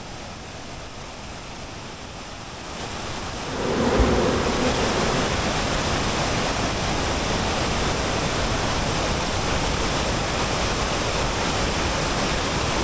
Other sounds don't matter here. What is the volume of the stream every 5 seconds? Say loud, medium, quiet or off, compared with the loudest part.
medium, loud, loud.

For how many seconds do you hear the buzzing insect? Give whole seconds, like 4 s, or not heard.
2 s.